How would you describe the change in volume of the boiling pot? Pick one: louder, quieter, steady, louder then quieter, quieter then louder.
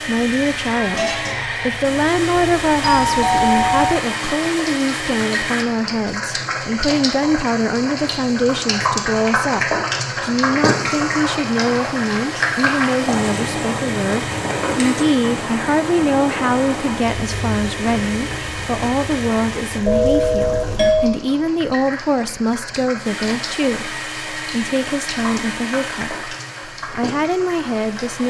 louder then quieter.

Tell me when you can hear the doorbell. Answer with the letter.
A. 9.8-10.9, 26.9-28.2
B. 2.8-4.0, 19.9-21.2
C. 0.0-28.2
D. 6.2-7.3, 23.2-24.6
B.